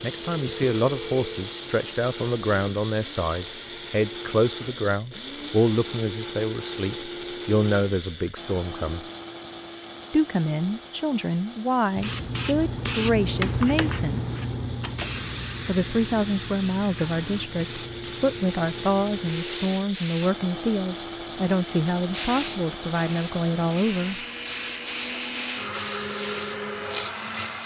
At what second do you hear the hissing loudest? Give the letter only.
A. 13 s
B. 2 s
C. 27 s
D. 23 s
A.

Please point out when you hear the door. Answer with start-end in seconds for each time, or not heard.
not heard.